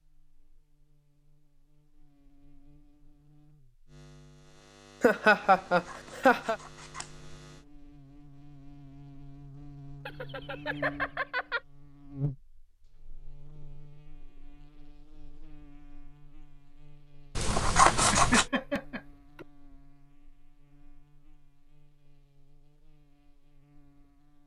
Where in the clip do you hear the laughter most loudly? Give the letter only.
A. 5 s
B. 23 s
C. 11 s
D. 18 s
A.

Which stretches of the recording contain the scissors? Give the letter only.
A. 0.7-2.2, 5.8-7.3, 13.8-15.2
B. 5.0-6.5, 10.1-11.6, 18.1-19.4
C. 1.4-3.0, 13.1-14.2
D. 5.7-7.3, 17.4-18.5
D.